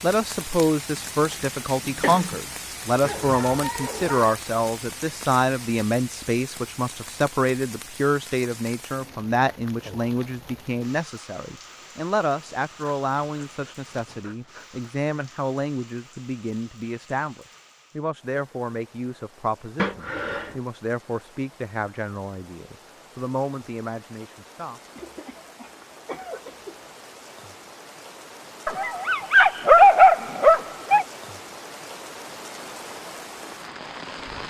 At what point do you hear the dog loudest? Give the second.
30 s.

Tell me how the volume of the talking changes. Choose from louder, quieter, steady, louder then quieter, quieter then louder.
quieter.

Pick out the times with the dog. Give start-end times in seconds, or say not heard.
3.0-4.3, 12.3-14.9, 28.6-31.1.